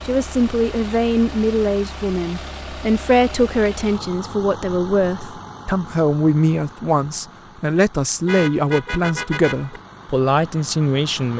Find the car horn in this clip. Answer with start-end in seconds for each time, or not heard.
8.2-9.8.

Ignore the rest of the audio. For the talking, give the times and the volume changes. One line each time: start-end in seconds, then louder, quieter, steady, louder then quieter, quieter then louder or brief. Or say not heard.
0.1-11.3 steady.